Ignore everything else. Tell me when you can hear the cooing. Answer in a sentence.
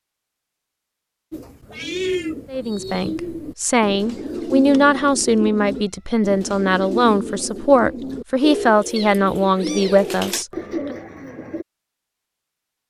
The cooing can be heard from 1.3 to 11.7 s.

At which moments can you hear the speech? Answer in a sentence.
The speech can be heard from 2.5 to 10.9 s.